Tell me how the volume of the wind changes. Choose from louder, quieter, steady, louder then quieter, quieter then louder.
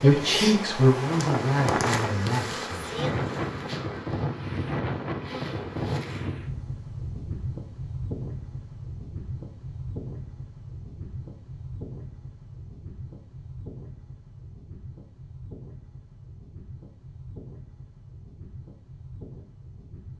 quieter.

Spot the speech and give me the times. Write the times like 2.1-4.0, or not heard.
0.0-3.0.